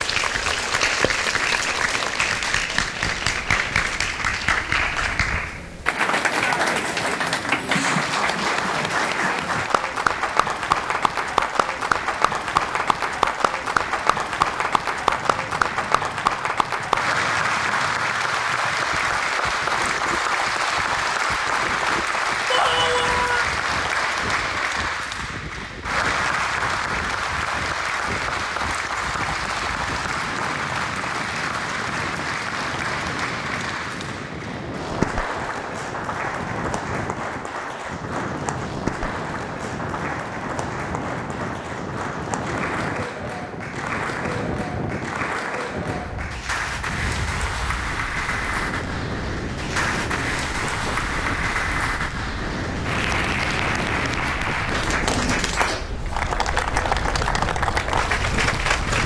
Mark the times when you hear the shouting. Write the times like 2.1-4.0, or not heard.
22.4-23.5.